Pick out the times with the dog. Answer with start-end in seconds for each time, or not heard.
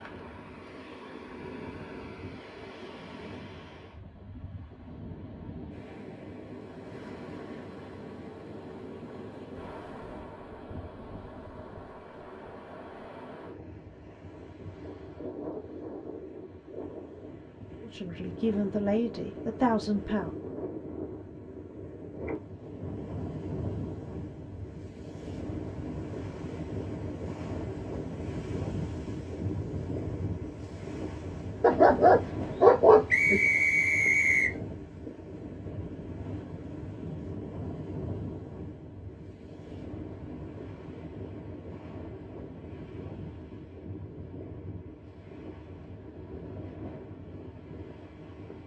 31.6-33.4.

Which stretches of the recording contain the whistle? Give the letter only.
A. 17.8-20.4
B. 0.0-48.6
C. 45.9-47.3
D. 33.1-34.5
D.